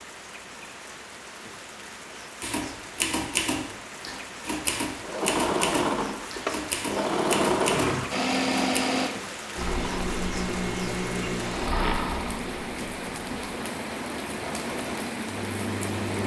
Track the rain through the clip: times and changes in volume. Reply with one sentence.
The rain can be heard from 0.0 to 16.2 s, getting louder.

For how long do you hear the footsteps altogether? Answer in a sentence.
The footsteps can't be heard in this clip.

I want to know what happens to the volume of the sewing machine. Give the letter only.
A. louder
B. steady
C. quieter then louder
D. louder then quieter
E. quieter
E.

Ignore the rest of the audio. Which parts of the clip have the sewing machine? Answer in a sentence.
The sewing machine can be heard from 5.0 to 16.2 s.